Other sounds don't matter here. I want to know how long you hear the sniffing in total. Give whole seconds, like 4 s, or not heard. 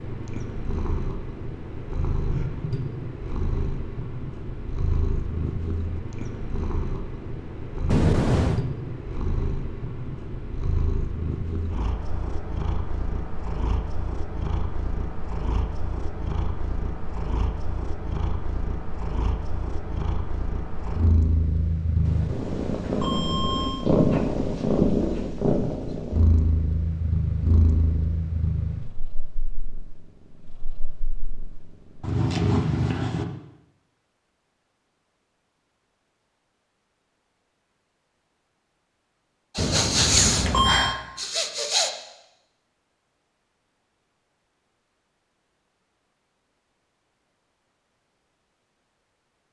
2 s.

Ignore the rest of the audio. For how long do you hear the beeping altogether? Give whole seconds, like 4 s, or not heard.
4 s.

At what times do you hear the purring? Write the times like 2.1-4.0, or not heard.
0.0-33.2.